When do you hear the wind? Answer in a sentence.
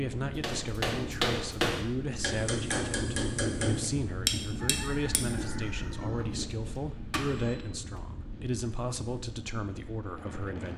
The wind can be heard from 0.0 to 10.7 s.